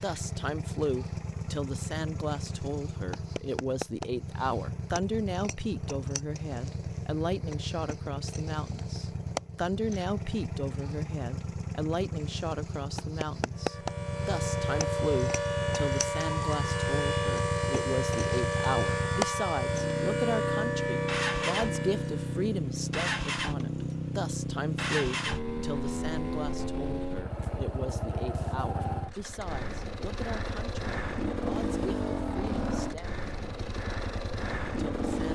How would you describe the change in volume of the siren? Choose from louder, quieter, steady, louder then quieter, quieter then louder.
steady.